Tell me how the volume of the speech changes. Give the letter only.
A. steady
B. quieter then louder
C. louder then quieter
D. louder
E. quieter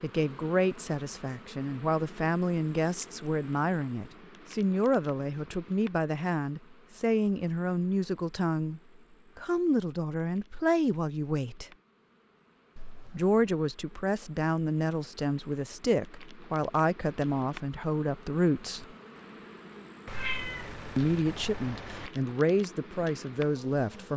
A.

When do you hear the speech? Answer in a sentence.
The speech can be heard from 0.0 to 11.7 s, from 13.1 to 18.9 s and from 20.9 to 24.1 s.